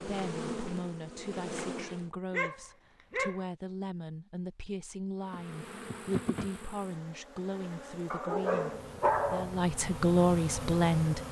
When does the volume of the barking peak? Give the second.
9 s.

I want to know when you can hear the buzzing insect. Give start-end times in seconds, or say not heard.
0.0-2.1, 5.2-11.2.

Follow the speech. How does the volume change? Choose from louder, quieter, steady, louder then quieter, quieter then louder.
louder.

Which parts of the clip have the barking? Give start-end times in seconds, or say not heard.
2.3-3.5, 8.1-9.6.